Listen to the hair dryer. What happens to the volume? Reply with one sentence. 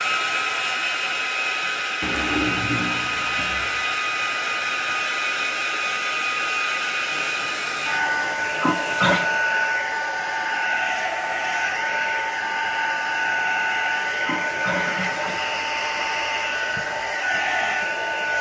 The loudness of the hair dryer stays about the same.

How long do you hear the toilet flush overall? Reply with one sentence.
You can hear the toilet flush for 7 seconds altogether.